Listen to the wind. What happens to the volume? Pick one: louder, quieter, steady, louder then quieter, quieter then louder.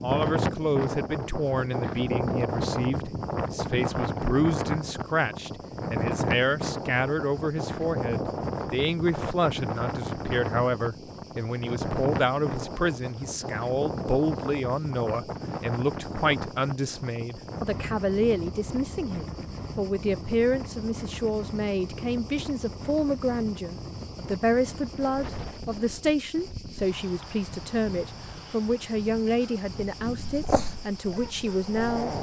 quieter.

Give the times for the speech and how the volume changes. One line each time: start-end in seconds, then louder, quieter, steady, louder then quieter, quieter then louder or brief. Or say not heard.
0.0-32.1 steady.